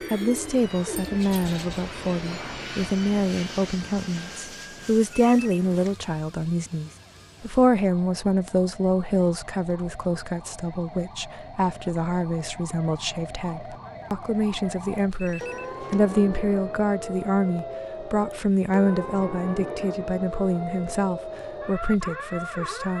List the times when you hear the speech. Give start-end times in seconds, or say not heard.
0.1-22.9.